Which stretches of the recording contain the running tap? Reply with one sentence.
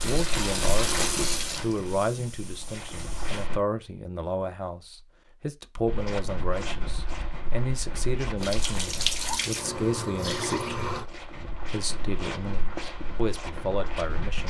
The running tap can be heard from 0.0 to 3.5 s and from 8.3 to 11.1 s.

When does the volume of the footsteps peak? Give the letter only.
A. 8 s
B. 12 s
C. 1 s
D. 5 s
C.